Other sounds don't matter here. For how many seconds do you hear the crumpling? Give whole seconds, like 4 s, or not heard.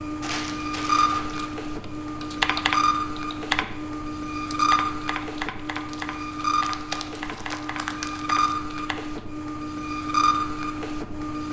4 s.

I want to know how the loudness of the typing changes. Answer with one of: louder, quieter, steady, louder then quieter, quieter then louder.
quieter.